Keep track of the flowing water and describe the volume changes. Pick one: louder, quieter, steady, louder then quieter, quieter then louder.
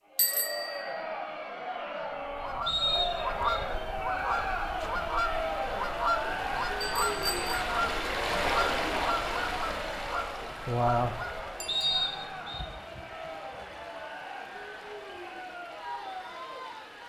louder then quieter.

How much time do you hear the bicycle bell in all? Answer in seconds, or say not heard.
2 s.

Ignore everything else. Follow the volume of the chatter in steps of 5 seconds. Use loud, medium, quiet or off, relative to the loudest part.
loud, loud, medium, medium.